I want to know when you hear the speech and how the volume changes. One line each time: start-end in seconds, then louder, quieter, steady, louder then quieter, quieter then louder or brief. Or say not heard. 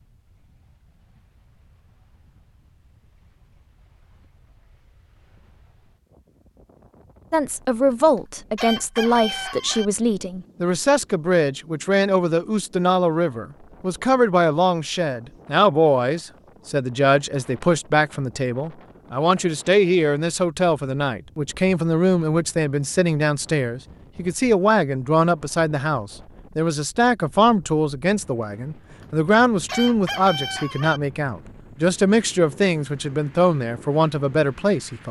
7.3-35.0 steady.